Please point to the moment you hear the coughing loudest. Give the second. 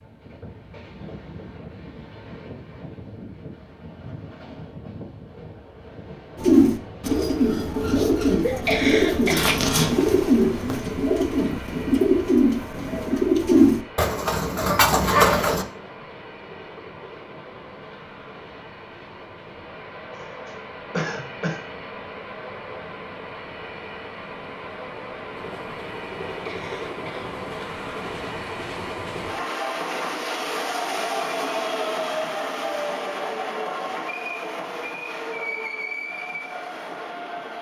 9 s.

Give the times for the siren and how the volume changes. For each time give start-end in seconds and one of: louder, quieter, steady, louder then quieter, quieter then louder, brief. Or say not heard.
not heard.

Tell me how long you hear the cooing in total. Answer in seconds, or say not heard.
9 s.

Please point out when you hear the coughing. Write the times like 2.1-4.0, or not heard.
8.4-9.7, 20.1-21.6, 26.2-27.3.